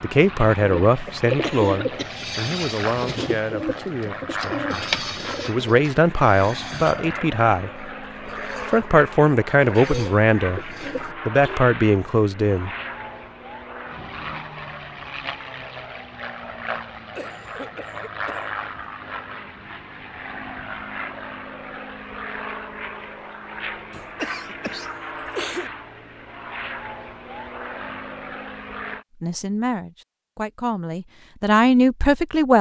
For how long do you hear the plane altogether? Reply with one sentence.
The plane can be heard for 29 seconds in total.